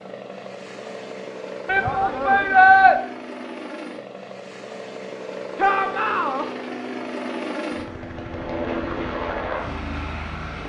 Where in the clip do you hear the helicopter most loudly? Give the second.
9 s.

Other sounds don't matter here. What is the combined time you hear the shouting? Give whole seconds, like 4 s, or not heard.
2 s.